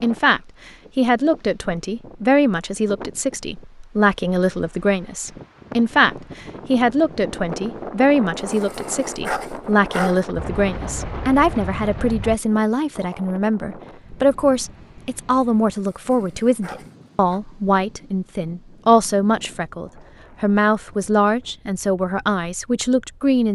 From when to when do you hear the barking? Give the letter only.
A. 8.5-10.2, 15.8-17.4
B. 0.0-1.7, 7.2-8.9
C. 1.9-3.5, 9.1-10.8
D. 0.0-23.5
A.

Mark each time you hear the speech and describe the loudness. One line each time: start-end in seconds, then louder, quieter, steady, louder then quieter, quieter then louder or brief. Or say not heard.
0.0-23.5 steady.